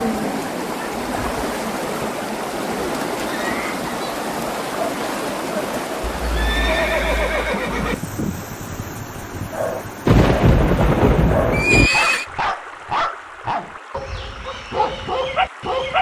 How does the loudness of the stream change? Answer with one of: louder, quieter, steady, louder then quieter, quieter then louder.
quieter.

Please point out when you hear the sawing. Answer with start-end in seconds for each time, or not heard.
not heard.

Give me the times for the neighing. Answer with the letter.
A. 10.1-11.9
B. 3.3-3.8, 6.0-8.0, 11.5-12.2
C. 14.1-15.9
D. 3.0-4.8
B.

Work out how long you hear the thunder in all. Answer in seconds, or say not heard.
2 s.